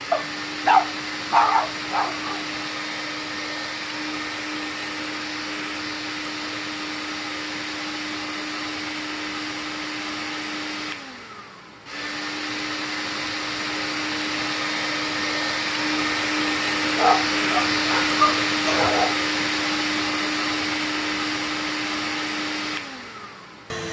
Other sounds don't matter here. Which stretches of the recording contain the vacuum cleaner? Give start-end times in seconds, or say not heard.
0.0-23.8.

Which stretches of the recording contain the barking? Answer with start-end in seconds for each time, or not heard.
0.1-2.4, 16.9-19.1.